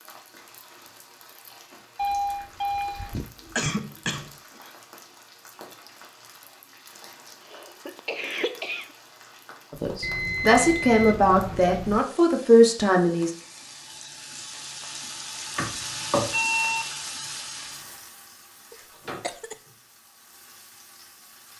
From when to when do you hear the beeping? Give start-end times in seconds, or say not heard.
1.9-3.3, 10.0-12.0, 16.3-16.9.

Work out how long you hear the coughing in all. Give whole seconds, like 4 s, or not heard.
5 s.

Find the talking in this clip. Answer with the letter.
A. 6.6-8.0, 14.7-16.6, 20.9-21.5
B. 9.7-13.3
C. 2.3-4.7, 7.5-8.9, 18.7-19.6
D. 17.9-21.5
B.